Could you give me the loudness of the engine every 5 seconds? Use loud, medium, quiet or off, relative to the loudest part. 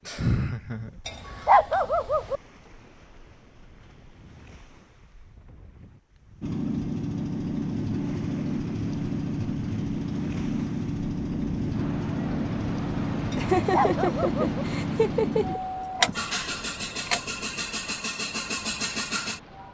off, loud, loud, loud.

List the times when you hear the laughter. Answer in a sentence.
You can hear the laughter from 0.1 to 1.4 s and from 13.3 to 15.6 s.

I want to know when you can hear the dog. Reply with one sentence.
The dog can be heard from 1.1 to 2.4 s and from 13.3 to 14.4 s.